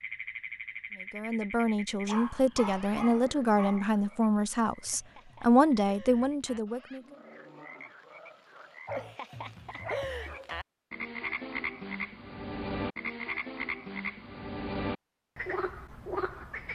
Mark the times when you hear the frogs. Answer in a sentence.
You can hear the frogs from 0.0 to 16.7 s.